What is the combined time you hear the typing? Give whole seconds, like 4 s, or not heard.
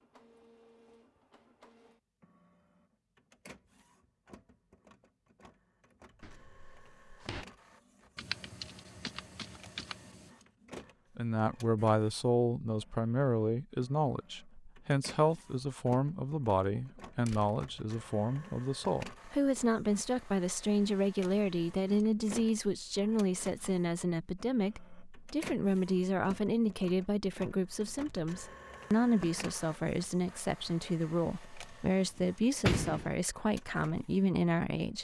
2 s.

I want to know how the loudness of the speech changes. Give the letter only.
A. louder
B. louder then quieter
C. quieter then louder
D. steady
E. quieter
D.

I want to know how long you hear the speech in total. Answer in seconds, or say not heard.
24 s.